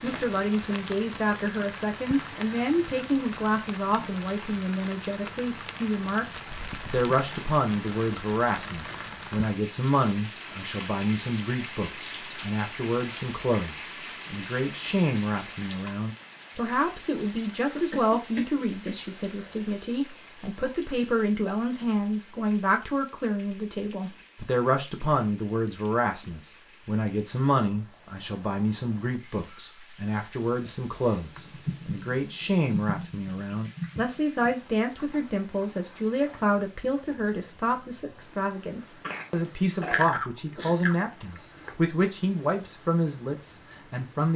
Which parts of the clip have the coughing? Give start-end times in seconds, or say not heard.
17.8-19.6, 39.0-41.8.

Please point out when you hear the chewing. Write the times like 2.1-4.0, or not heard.
39.8-41.8.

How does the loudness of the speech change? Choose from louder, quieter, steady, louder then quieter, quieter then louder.
steady.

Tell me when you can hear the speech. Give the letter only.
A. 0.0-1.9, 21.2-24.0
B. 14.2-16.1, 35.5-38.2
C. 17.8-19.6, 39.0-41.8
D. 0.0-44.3
D.